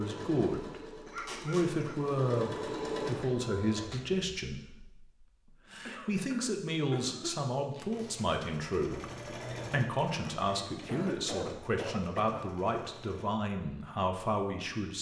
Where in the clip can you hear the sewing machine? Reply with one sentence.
You can hear the sewing machine from 0.0 to 4.2 s and from 7.9 to 13.3 s.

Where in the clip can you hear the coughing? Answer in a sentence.
You can hear the coughing from 1.1 to 1.9 s, from 5.8 to 7.5 s and from 10.8 to 12.4 s.